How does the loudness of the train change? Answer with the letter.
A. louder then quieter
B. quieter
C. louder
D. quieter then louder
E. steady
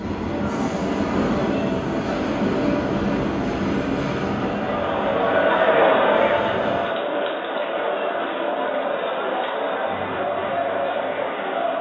B.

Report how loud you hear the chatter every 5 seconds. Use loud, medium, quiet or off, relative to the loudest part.
medium, loud, loud.